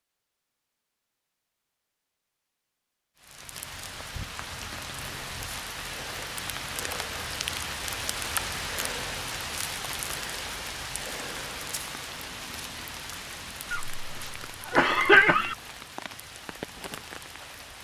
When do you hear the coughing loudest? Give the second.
15 s.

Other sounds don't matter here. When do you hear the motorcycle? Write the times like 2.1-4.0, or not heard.
not heard.